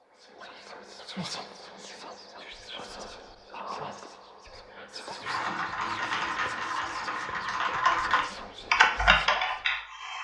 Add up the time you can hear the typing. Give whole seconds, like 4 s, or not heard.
5 s.